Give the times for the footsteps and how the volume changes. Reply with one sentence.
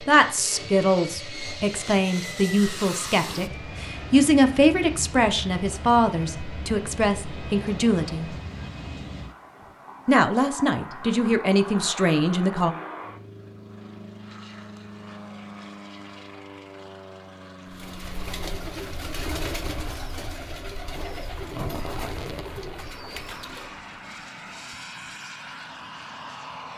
The footsteps can't be heard in this clip.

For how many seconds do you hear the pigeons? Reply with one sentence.
You can hear the pigeons for 6 seconds altogether.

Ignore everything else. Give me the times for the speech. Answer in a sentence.
The speech can be heard from 0.1 to 8.3 s and from 10.1 to 12.7 s.